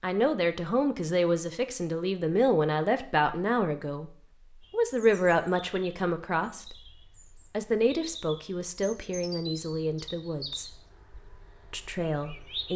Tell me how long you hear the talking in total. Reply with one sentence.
The talking can be heard for 12 seconds in total.